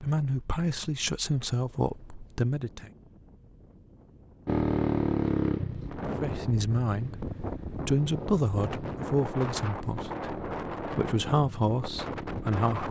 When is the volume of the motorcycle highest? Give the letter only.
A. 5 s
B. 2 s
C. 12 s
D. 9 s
A.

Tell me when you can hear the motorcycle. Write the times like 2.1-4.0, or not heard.
4.5-12.7.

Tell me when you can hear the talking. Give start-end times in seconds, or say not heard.
0.0-2.9, 6.2-12.8.